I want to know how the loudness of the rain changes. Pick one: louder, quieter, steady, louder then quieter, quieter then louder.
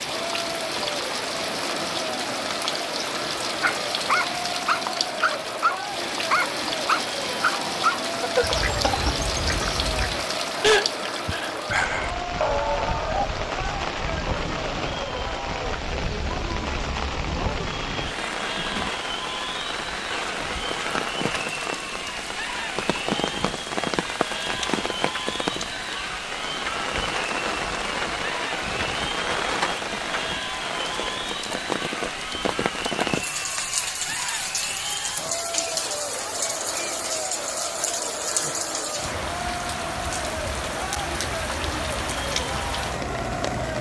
steady.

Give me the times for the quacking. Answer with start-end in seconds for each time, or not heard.
8.4-10.2.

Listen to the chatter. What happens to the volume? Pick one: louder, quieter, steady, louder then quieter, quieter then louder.
steady.